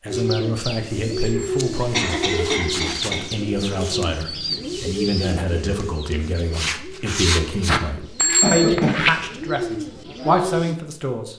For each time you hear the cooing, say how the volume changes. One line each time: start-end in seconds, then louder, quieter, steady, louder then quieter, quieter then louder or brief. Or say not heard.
0.1-10.8 steady.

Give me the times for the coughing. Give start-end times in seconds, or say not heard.
1.9-3.2, 8.4-9.1.